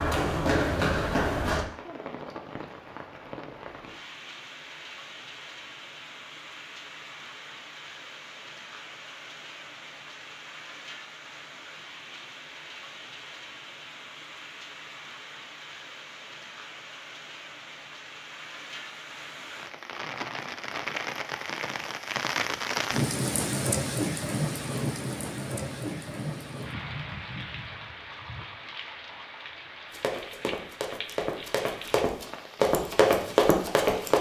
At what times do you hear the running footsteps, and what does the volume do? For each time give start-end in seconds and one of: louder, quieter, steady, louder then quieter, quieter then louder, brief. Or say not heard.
0.0-1.6 brief
29.9-34.1 louder.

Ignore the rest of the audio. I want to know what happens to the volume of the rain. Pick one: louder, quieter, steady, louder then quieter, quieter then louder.
louder then quieter.